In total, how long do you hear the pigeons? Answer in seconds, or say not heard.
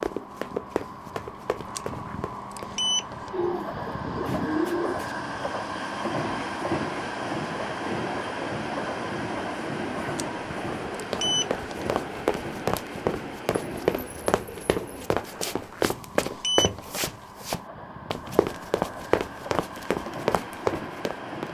3 s.